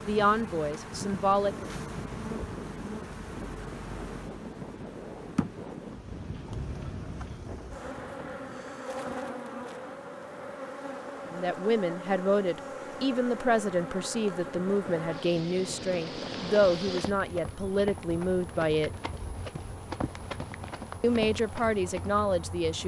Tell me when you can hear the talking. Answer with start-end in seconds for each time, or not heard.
0.0-1.6, 11.3-18.9, 21.0-22.8.